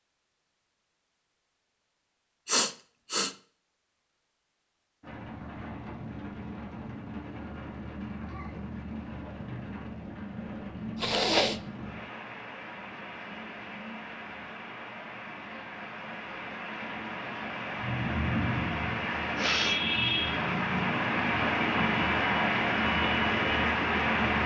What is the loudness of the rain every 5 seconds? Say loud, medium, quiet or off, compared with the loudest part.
off, quiet, quiet, medium, loud.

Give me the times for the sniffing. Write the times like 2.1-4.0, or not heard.
2.5-3.3, 10.9-11.6, 19.4-19.8.